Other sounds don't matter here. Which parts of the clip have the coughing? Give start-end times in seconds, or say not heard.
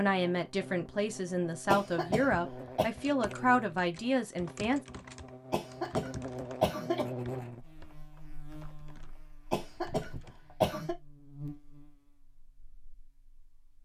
1.6-2.9, 5.5-7.0, 9.5-10.9.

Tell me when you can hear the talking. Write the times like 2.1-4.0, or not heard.
0.0-4.8.